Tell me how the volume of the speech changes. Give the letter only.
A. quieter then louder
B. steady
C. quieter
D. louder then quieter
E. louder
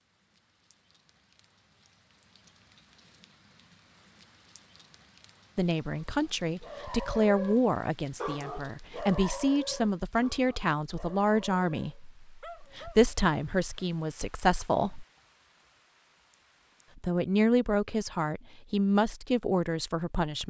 B.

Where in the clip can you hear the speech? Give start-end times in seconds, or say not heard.
5.5-15.1, 16.9-20.4.